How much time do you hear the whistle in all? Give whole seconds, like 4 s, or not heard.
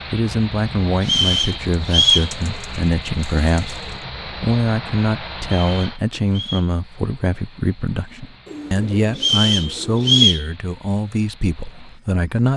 4 s.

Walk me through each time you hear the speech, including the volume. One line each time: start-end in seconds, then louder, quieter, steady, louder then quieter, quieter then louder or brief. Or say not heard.
0.1-12.5 steady.